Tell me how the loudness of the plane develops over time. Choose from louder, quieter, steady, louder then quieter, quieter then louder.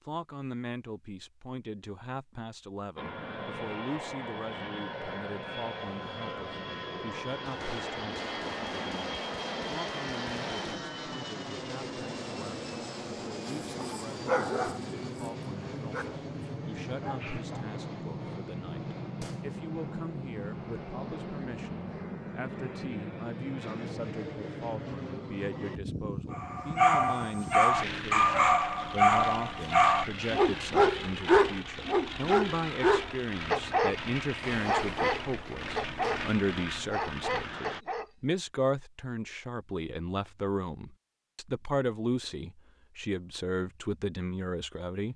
steady.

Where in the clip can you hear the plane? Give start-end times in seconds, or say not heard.
3.0-37.9.